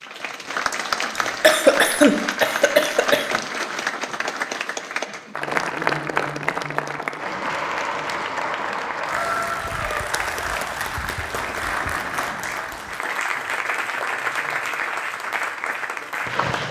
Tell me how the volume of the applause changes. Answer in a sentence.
The volume of the applause stays about the same.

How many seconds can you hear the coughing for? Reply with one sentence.
The coughing can be heard for 2 seconds in total.